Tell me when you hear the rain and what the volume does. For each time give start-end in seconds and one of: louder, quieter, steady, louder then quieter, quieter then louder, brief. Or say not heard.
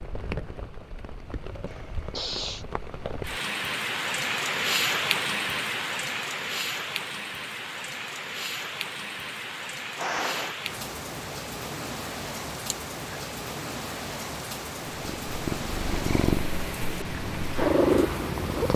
0.0-18.7 louder then quieter.